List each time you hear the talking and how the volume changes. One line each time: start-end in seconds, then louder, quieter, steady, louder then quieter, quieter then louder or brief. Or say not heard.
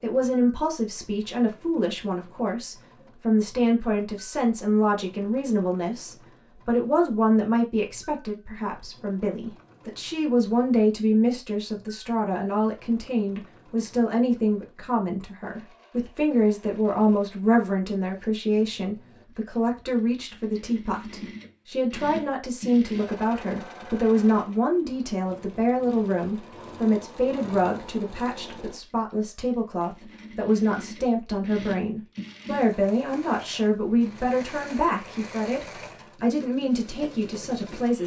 0.0-38.0 steady.